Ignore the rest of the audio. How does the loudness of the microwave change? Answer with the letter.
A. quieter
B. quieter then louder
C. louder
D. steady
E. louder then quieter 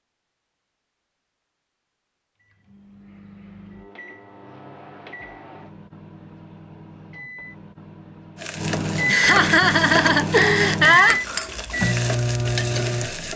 C.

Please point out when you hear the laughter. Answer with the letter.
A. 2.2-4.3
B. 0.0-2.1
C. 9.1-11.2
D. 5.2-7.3
C.